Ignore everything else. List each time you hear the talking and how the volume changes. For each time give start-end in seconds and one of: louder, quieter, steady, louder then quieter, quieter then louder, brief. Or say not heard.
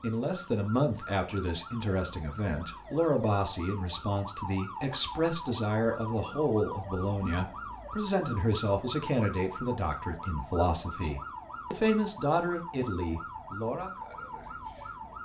0.0-13.9 steady.